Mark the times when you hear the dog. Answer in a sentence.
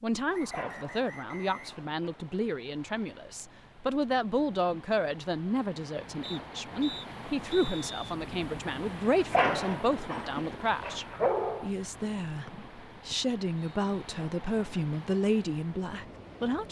The dog can be heard from 0.5 to 2.2 s and from 9.3 to 11.7 s.